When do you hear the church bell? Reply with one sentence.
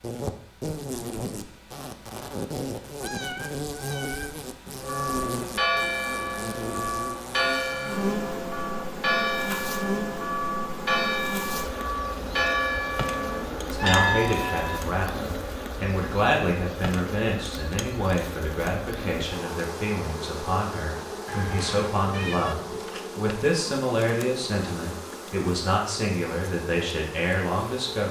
You can hear the church bell from 4.8 to 14.8 s.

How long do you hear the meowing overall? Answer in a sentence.
The meowing can be heard for 4 seconds in total.